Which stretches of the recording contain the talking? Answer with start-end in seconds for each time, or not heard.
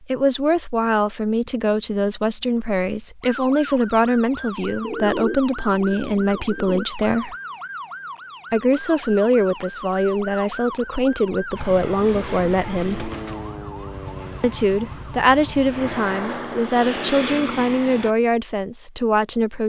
0.1-7.3, 8.5-13.1, 14.4-19.6.